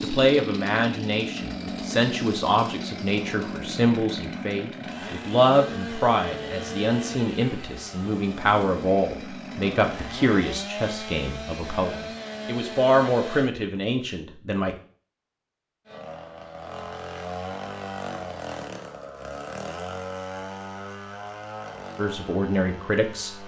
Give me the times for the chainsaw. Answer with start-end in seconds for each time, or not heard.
0.0-13.5, 15.8-23.4.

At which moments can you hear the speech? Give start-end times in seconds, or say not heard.
0.0-14.7, 21.9-23.4.